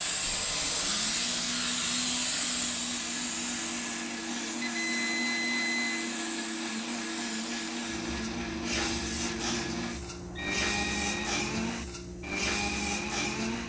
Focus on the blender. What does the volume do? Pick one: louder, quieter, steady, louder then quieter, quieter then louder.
louder.